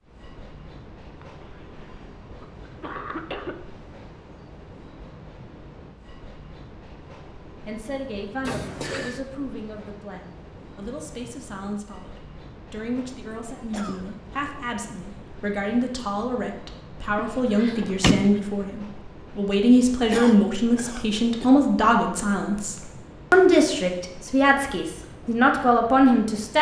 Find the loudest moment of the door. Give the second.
18 s.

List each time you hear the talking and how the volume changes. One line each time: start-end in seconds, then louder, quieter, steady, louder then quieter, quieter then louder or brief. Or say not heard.
7.7-26.5 louder.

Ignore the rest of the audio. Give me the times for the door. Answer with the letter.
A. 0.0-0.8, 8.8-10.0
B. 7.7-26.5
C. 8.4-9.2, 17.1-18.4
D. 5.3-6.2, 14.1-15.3
C.